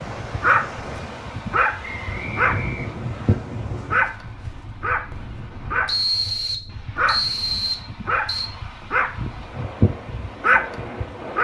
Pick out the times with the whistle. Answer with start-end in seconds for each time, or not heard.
1.8-3.4, 5.8-8.5.